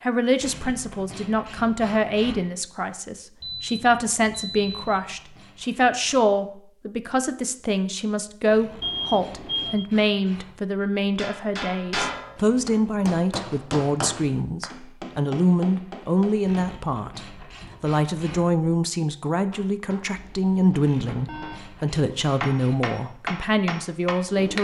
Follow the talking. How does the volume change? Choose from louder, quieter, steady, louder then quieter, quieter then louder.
steady.